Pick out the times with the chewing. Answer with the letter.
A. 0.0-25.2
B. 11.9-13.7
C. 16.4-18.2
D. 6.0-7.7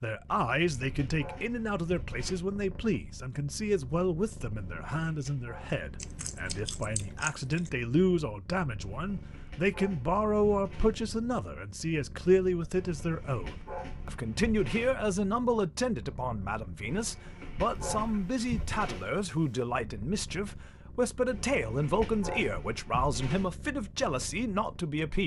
D.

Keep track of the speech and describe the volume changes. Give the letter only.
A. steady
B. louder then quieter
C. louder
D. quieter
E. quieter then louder
A.